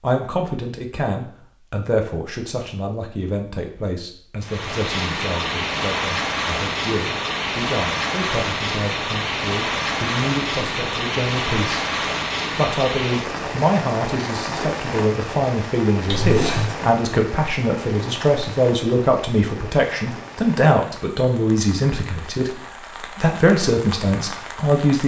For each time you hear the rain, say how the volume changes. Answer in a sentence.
The rain can be heard from 4.4 to 25.0 s, getting quieter.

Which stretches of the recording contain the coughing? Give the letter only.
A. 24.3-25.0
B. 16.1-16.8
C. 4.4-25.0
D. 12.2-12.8
B.